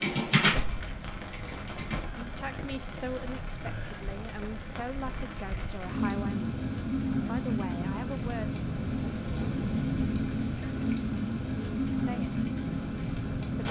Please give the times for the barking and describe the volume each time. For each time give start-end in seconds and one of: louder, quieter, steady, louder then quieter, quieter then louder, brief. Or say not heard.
not heard.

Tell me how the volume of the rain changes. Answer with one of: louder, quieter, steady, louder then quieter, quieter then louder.
louder.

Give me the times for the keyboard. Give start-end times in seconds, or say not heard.
0.0-2.1.